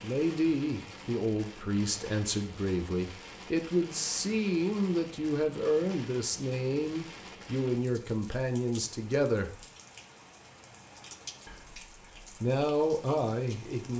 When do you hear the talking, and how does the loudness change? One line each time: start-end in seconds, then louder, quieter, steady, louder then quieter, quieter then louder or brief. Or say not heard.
0.0-9.7 steady
11.4-13.9 brief.